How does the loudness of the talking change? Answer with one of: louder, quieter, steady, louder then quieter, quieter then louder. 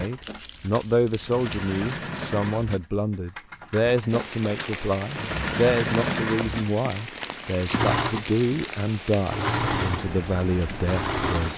steady.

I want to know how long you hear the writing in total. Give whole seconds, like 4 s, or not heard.
not heard.